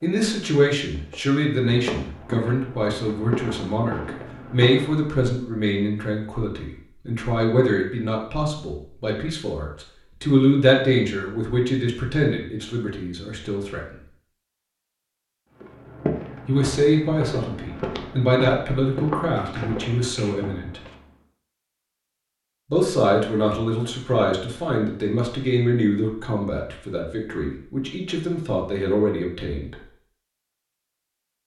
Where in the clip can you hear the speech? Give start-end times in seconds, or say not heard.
0.0-13.9, 16.4-20.8, 22.7-29.8.